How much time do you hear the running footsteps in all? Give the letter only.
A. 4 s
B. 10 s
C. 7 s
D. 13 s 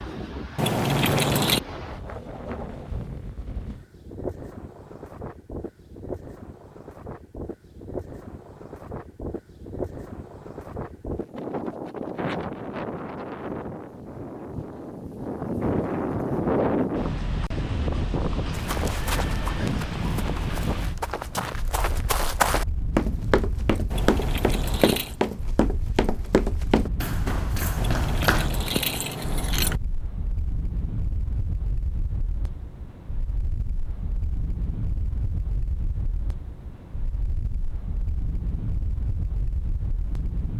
B.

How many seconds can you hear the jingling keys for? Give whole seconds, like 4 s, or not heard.
4 s.